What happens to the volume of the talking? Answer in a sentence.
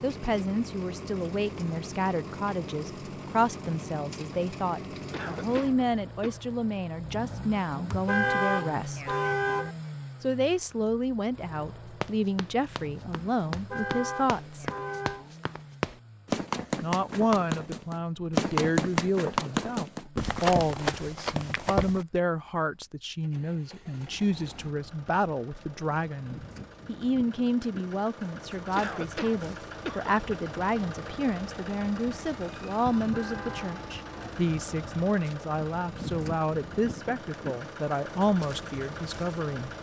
The volume of the talking stays about the same.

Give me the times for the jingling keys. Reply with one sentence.
You can't hear the jingling keys here.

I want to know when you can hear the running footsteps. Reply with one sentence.
You can hear the running footsteps from 12.0 to 22.1 s.